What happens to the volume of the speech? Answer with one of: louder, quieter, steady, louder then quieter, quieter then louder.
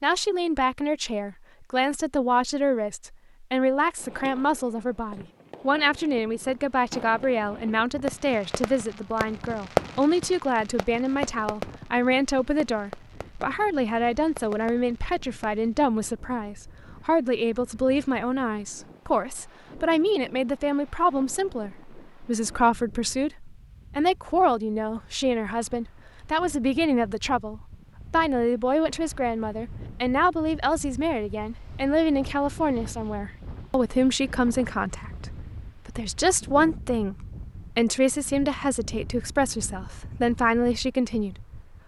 steady.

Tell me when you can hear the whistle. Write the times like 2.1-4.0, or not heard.
not heard.